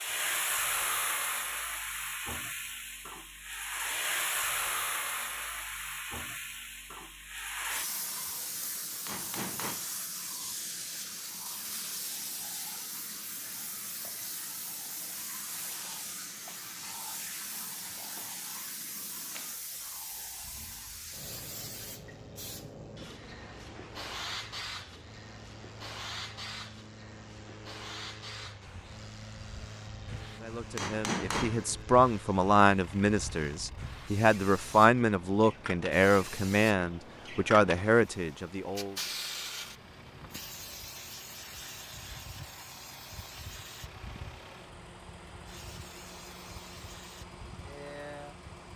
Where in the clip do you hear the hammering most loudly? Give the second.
31 s.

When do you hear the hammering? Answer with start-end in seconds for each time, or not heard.
8.3-9.8, 30.1-31.8.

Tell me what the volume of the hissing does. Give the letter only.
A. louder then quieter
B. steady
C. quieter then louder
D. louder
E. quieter
E.